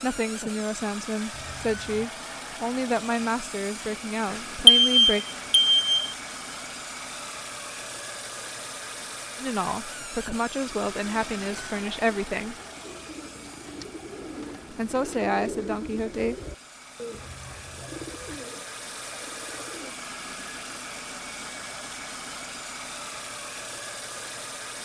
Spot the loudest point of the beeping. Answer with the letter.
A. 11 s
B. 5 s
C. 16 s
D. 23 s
B.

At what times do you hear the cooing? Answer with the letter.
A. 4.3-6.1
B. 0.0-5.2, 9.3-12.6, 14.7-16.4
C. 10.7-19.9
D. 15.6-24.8
C.